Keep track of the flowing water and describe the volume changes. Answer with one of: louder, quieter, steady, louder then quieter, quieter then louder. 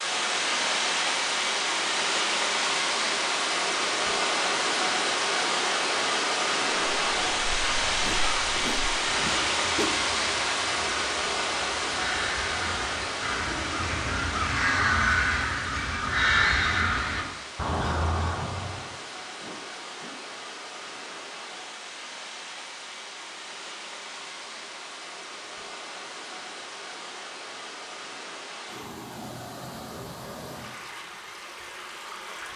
quieter.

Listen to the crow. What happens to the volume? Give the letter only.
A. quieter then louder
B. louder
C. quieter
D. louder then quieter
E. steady
B.